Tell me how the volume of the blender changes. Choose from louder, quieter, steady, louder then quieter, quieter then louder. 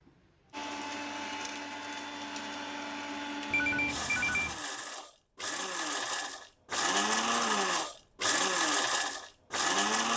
louder.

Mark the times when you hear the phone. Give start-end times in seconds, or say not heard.
3.5-4.6.